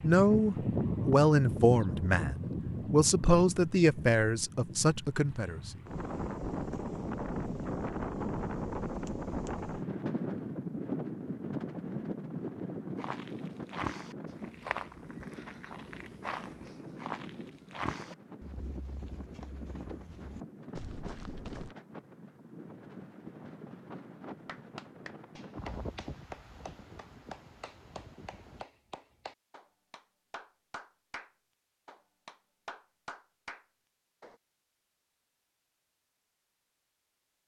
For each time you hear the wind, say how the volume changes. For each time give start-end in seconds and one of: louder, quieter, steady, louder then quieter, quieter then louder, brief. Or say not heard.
0.0-28.6 quieter.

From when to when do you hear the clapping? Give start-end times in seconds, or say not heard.
24.4-34.4.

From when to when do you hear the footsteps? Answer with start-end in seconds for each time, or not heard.
12.9-21.8.